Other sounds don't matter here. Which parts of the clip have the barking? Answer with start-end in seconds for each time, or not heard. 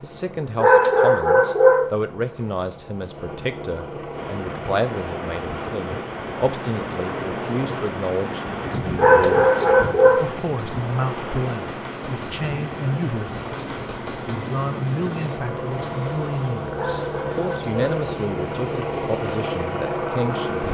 0.6-1.9, 8.9-10.3, 16.8-18.1.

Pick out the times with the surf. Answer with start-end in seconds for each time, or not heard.
4.1-20.6.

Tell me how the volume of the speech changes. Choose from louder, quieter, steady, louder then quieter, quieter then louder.
steady.